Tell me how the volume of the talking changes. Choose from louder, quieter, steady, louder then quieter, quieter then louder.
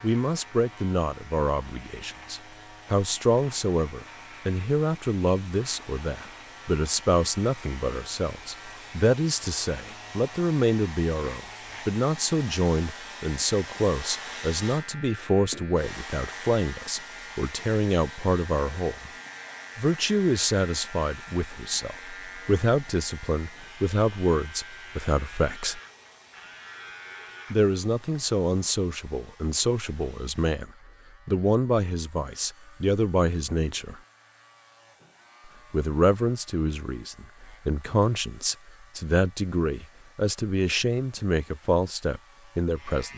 steady.